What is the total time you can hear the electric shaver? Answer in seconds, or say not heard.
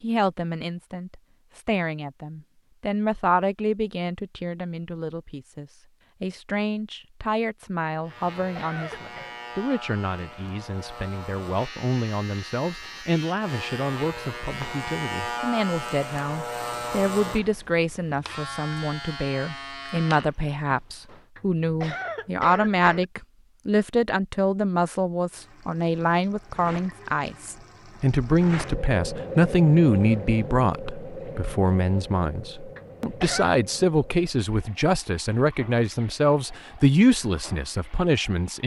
13 s.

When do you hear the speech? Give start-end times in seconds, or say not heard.
0.0-38.6.